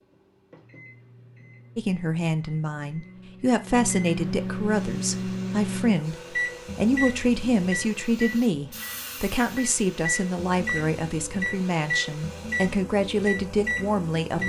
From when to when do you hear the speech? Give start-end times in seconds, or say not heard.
1.8-14.4.